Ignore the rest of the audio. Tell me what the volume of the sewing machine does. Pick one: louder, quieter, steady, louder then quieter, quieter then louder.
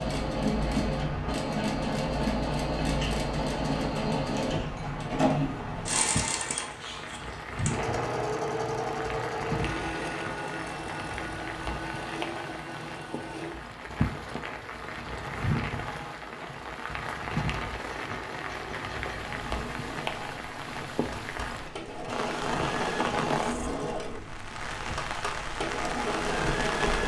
quieter then louder.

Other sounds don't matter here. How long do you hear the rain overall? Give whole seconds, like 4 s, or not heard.
27 s.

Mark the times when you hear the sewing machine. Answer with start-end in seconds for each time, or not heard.
0.0-27.0.